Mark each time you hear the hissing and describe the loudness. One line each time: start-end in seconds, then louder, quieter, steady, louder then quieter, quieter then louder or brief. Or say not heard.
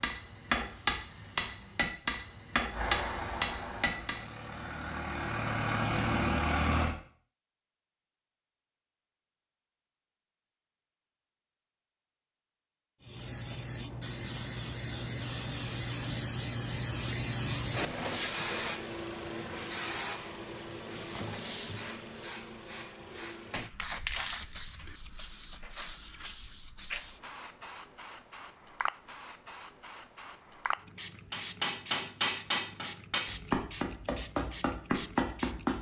13.0-35.7 quieter.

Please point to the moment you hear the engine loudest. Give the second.
6 s.